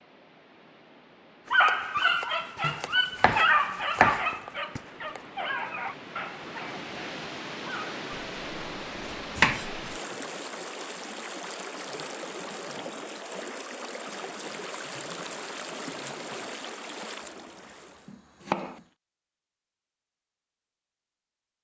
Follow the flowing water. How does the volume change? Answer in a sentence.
The volume of the flowing water goes up.